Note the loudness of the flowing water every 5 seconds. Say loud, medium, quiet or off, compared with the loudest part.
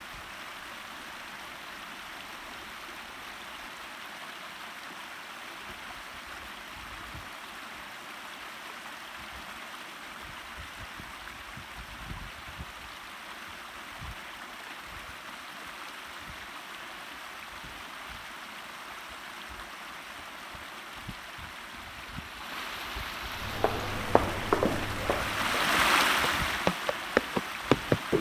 quiet, quiet, quiet, quiet, medium, loud.